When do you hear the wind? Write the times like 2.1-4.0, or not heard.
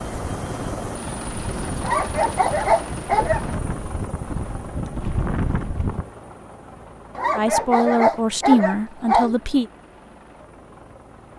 0.1-6.0.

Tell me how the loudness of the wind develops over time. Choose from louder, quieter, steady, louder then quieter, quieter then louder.
louder.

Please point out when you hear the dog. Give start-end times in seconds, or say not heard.
1.8-3.5, 7.2-9.3.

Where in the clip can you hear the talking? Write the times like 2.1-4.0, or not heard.
7.3-9.7.